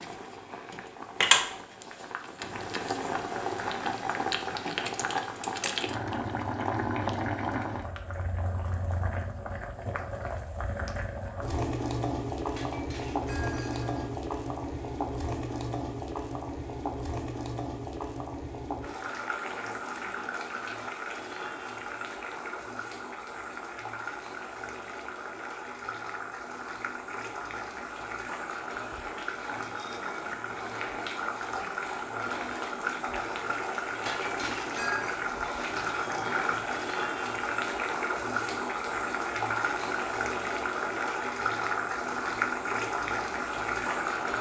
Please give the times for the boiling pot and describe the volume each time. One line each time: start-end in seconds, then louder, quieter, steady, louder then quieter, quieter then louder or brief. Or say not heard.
0.0-44.3 quieter then louder.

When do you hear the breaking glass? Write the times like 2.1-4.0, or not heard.
12.6-14.2, 34.0-35.1.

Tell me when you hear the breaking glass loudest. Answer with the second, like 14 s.
35 s.